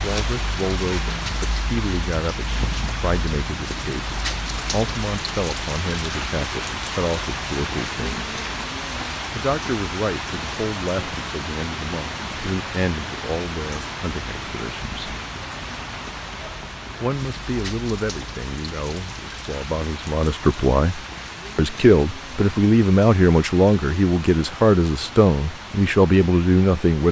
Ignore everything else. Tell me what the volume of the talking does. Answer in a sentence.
The loudness of the talking goes up.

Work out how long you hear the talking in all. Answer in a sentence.
You can hear the talking for 24 seconds altogether.